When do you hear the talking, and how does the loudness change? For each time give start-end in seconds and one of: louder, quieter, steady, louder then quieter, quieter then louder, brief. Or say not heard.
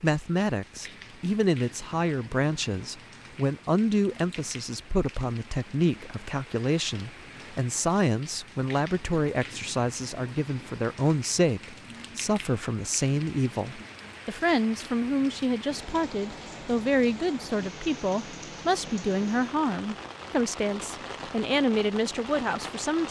0.0-23.0 steady.